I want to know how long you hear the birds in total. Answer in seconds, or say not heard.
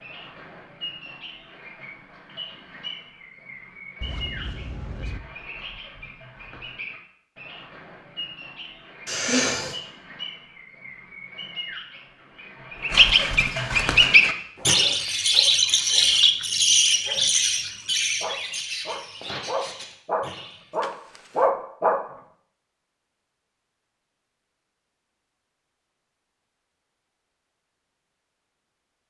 21 s.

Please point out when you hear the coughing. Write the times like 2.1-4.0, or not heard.
9.1-9.8.